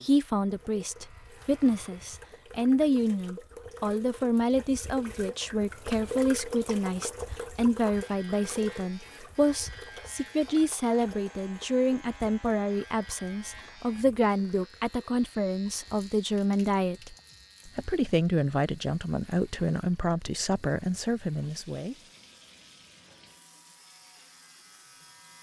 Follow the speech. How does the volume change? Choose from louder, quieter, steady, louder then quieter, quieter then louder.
steady.